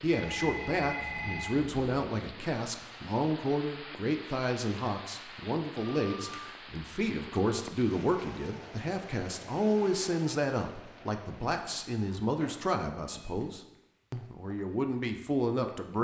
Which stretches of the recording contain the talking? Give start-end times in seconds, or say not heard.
0.0-15.9.